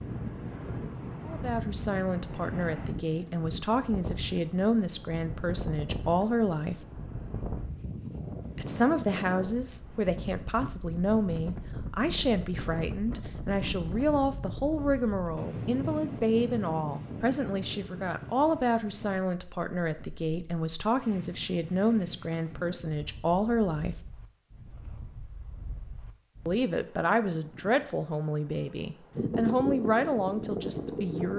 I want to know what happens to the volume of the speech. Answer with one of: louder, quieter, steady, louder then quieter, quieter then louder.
steady.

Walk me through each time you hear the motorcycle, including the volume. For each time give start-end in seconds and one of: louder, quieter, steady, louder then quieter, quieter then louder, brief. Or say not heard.
not heard.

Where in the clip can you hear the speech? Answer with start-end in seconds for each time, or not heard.
1.2-6.8, 8.6-24.0, 26.4-31.3.